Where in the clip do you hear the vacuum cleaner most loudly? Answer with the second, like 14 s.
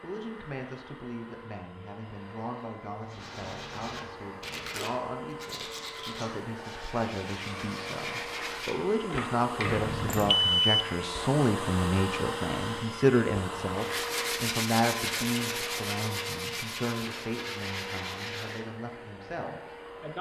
12 s.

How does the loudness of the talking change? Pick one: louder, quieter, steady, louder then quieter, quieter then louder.
louder then quieter.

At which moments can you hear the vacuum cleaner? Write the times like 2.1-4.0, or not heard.
0.0-20.1.